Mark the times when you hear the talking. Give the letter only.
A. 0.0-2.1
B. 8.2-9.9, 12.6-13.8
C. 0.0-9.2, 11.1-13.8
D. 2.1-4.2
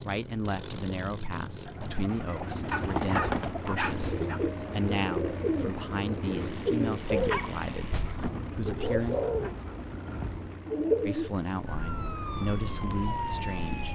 C.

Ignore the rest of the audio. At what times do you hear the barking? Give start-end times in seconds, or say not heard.
2.7-4.4, 7.0-8.3.